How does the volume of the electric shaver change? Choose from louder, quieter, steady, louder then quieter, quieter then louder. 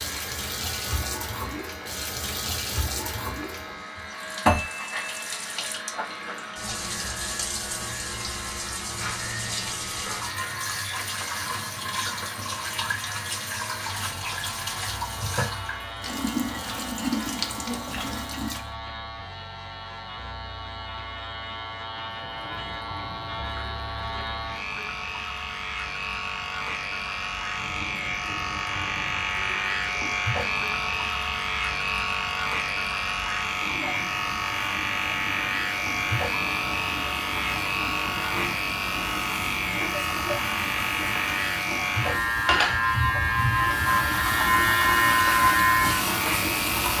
louder.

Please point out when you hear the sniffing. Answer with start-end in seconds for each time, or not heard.
not heard.